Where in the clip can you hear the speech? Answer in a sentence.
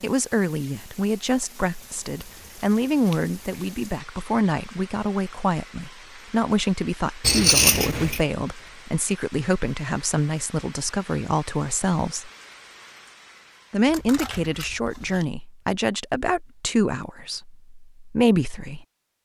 The speech can be heard from 0.0 to 12.3 s and from 13.7 to 18.9 s.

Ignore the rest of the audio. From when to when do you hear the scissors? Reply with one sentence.
You can hear the scissors from 1.9 to 3.3 s, from 7.2 to 8.2 s and from 13.8 to 15.3 s.